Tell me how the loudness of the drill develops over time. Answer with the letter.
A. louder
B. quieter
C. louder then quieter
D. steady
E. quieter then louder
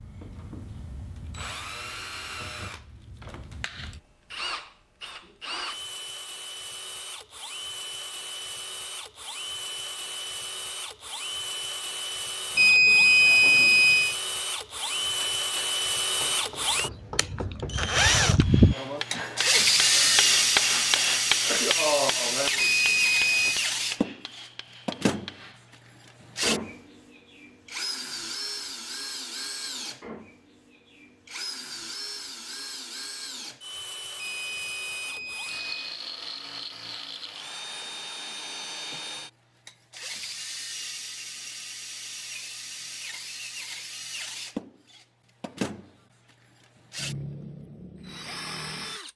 C.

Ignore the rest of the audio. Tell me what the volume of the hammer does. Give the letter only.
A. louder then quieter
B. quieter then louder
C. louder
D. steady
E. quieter
A.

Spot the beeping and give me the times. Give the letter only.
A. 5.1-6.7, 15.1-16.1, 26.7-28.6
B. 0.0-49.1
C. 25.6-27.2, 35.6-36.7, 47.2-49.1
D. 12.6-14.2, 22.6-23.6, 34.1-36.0
D.